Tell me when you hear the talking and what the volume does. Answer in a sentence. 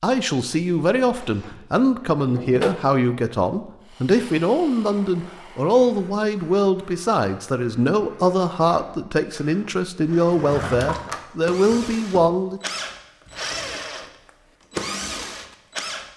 The talking can be heard from 0.0 to 12.6 s, at a steady volume.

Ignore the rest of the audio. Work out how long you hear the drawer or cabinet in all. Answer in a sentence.
The drawer or cabinet can be heard for 3 seconds in total.